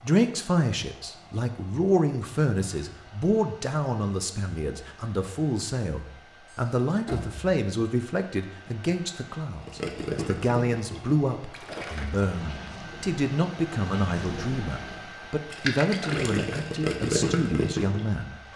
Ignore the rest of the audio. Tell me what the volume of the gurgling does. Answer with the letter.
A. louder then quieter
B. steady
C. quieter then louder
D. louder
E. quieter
C.